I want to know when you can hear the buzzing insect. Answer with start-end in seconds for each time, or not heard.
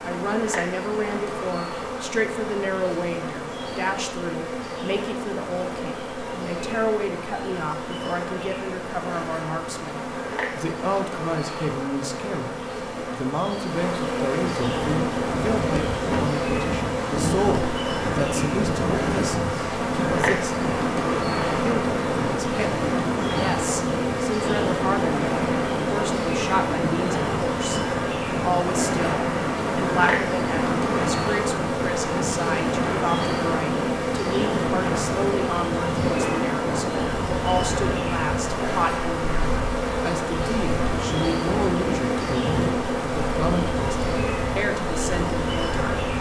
0.0-46.1.